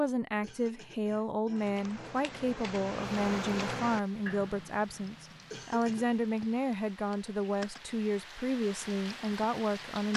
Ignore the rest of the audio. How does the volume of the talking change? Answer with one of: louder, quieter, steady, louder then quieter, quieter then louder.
steady.